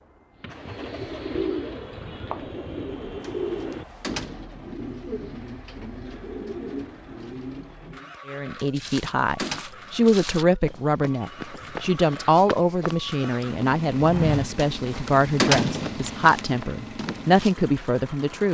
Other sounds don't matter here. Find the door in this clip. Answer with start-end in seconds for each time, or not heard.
3.2-4.3, 8.6-9.7, 14.7-16.4.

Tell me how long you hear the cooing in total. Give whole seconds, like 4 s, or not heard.
8 s.